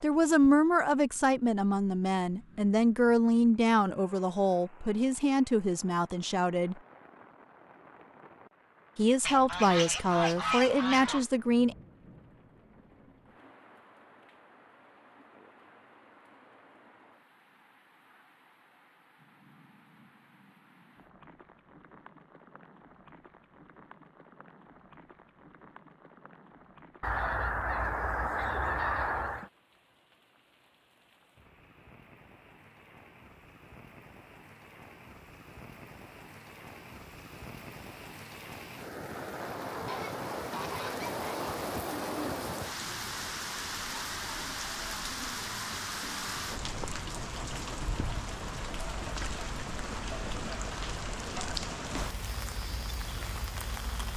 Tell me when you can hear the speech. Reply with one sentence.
You can hear the speech from 0.0 to 6.8 s and from 8.9 to 11.8 s.